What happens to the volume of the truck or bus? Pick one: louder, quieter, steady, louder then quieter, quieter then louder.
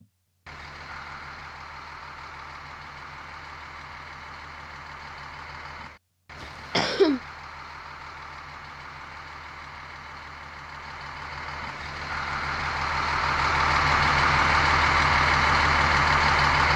louder.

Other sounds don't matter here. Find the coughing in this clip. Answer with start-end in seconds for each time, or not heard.
6.4-7.2.